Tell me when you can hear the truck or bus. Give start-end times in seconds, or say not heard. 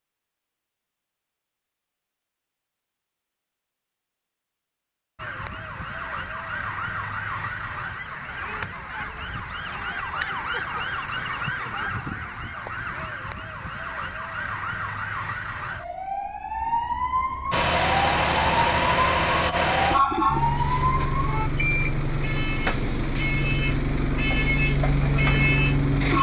17.5-26.1.